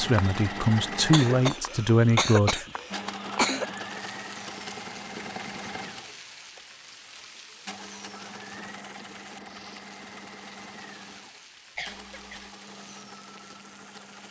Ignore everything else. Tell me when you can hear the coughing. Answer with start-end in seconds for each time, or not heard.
1.1-3.6, 11.8-12.5.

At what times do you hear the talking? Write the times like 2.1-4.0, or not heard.
0.0-2.6.